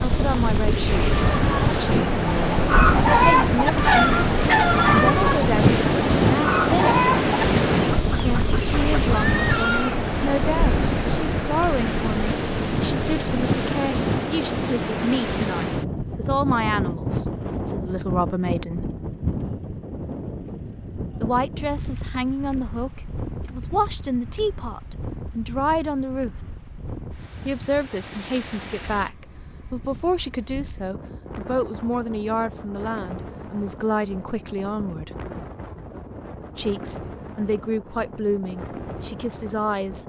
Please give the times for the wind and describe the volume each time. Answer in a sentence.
You can hear the wind from 0.0 to 40.0 s, getting quieter.